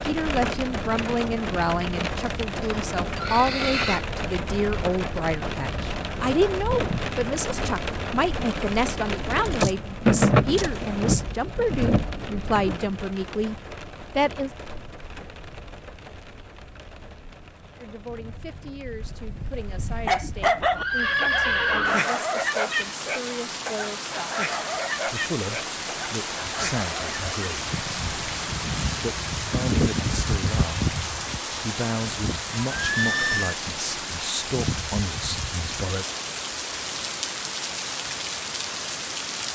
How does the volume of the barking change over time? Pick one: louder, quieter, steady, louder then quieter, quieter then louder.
quieter.